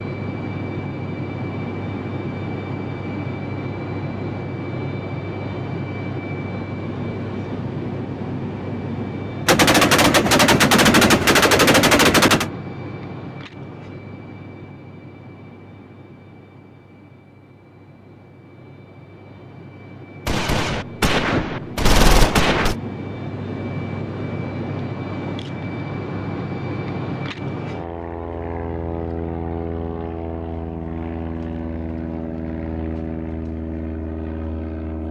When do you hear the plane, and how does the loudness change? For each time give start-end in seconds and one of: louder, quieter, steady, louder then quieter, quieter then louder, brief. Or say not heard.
0.0-35.0 quieter then louder.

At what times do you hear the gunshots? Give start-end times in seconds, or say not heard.
9.4-12.5, 20.2-22.8.